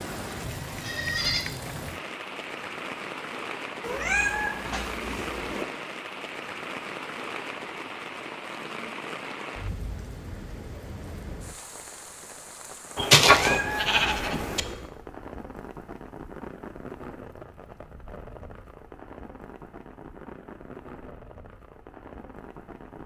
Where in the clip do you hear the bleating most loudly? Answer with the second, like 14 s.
13 s.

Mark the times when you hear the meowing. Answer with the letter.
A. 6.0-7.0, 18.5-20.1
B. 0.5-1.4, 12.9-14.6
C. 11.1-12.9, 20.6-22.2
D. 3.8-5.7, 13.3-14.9
D.